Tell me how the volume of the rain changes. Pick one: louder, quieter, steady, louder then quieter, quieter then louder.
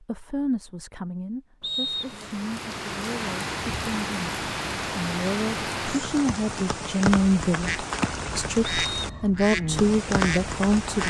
steady.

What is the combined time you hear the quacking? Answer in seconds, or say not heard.
3 s.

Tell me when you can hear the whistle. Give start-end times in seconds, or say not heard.
1.6-2.2, 8.7-9.2.